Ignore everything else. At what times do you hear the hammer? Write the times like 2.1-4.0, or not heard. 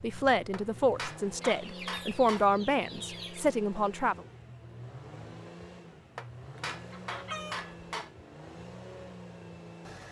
0.5-2.5, 6.2-8.1.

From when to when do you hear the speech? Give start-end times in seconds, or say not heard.
0.0-4.2.